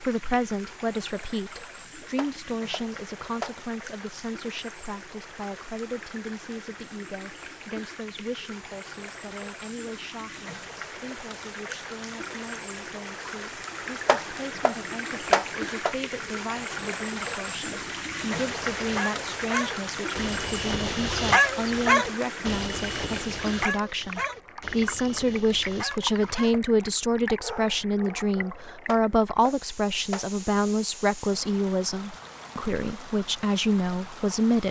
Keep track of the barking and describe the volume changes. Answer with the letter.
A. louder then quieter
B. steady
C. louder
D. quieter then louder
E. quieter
A.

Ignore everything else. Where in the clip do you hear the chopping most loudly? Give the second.
15 s.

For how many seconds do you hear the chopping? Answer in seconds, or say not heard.
5 s.